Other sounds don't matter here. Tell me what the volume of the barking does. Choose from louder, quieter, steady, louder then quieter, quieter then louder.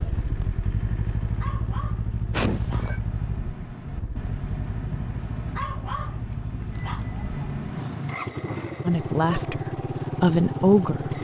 louder.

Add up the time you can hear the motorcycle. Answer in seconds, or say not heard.
11 s.